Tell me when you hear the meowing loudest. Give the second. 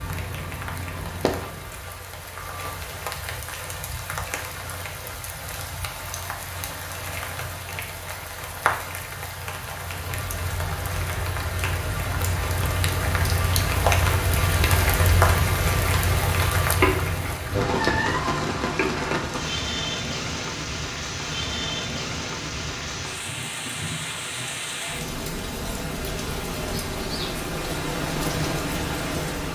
17 s.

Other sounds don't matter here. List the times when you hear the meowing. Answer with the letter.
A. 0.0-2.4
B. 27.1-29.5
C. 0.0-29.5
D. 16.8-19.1
D.